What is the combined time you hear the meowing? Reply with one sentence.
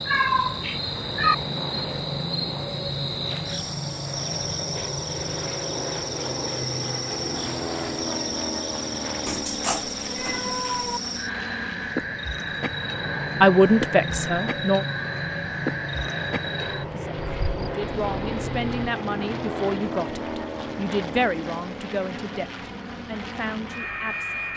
You can hear the meowing for 4 seconds altogether.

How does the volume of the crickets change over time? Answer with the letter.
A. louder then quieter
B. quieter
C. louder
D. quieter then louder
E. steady
E.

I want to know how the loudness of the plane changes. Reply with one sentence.
The volume of the plane stays about the same.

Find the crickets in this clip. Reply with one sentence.
You can hear the crickets from 0.0 to 17.8 s.